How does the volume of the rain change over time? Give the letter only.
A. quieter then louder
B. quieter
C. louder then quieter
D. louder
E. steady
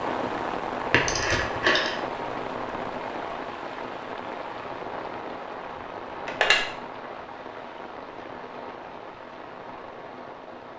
B.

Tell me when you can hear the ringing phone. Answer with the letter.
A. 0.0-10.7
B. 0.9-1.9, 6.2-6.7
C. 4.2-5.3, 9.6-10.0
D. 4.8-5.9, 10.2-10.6
B.